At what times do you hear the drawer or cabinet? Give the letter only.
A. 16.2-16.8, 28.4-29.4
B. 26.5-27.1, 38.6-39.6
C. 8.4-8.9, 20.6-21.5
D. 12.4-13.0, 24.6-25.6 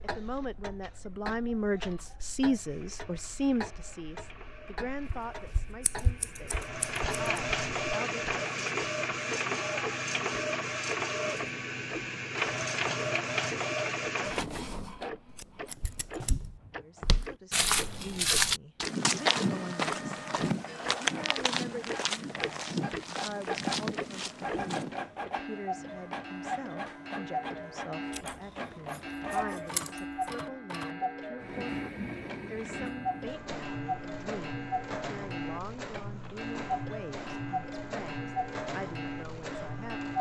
A.